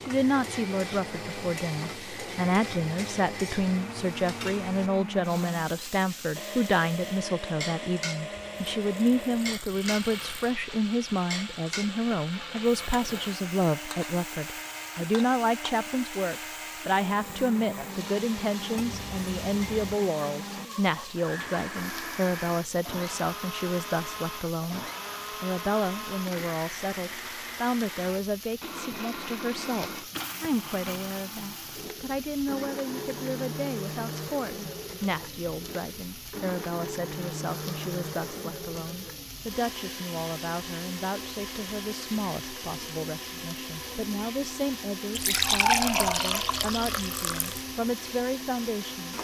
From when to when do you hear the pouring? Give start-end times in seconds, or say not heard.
8.3-10.6, 18.8-20.0, 45.1-47.6.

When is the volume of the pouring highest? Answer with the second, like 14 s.
46 s.